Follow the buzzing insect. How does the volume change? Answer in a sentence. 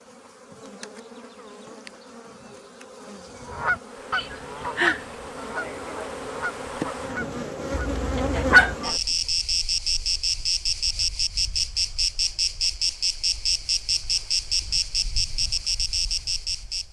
The volume of the buzzing insect goes up.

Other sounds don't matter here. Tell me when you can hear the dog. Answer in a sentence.
The dog can be heard from 7.7 to 8.8 s.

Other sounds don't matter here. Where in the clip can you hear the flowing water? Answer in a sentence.
You can't hear the flowing water here.